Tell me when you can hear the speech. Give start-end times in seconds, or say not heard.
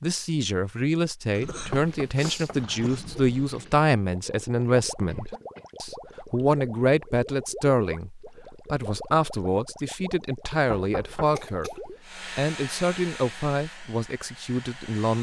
0.0-15.1.